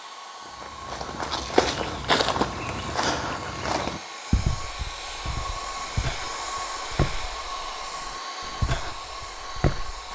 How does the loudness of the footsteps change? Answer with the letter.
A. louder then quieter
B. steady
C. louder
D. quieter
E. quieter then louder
D.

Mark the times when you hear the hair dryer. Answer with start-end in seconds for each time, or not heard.
0.0-10.1.